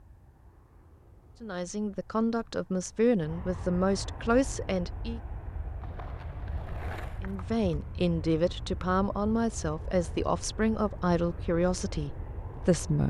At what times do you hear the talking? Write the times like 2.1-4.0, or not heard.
1.4-5.2, 7.2-13.0.